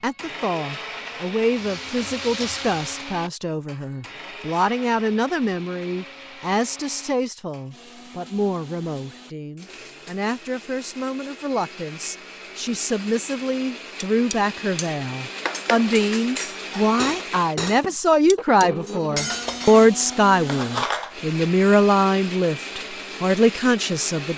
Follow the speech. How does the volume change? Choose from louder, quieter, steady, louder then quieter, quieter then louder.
louder.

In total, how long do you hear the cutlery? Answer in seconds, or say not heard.
7 s.